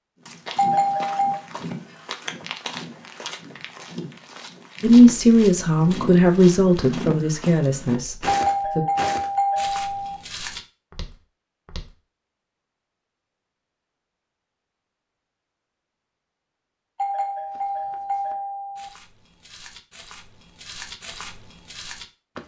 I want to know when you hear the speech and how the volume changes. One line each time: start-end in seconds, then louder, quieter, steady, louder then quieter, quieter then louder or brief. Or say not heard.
4.8-8.8 quieter.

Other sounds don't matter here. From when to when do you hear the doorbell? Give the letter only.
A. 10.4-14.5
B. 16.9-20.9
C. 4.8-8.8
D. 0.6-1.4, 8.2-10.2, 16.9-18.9
D.